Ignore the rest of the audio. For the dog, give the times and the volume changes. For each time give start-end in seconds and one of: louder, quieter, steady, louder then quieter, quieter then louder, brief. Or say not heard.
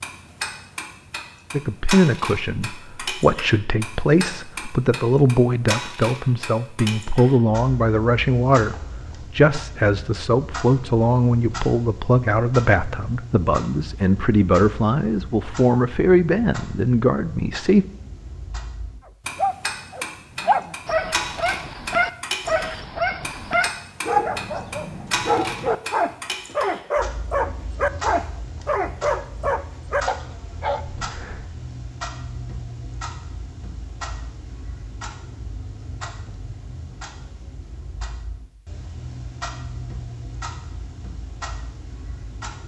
19.4-30.8 steady.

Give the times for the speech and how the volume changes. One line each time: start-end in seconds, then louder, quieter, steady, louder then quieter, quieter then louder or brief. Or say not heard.
1.5-17.9 steady.